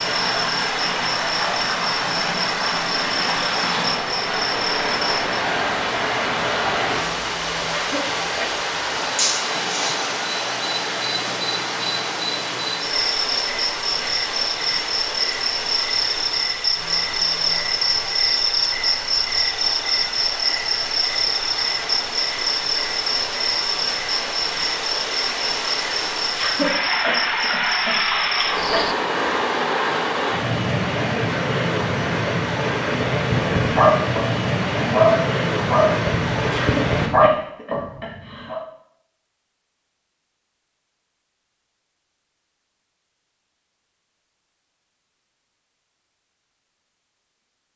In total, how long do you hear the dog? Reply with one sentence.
The dog can be heard for 5 seconds in total.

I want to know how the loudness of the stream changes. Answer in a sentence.
The loudness of the stream goes down, then up.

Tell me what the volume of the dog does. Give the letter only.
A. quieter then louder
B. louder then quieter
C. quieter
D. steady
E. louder
B.